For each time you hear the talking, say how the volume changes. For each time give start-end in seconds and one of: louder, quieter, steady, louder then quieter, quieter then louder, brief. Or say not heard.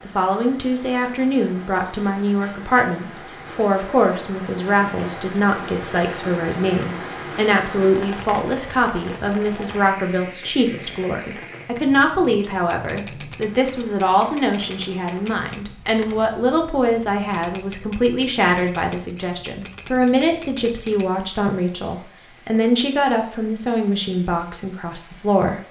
0.1-25.6 steady.